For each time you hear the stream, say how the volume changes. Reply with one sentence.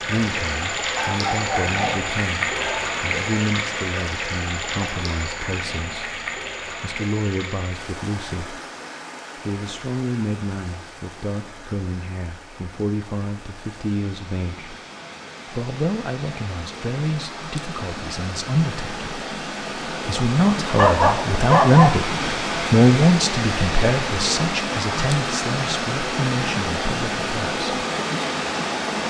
The stream can be heard from 0.0 to 29.0 s, getting quieter then louder.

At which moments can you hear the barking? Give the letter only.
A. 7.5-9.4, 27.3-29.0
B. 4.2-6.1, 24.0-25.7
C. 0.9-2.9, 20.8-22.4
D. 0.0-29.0
C.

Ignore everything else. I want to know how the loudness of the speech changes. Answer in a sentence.
The loudness of the speech goes up.